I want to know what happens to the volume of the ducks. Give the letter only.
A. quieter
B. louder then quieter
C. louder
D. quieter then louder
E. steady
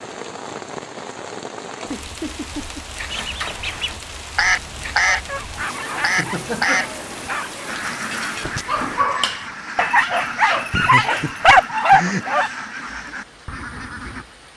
A.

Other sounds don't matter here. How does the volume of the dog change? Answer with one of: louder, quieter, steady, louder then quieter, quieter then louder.
louder.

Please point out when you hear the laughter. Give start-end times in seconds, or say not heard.
1.8-2.9, 5.8-7.0, 10.7-12.2.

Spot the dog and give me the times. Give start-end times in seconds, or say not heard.
5.1-12.5.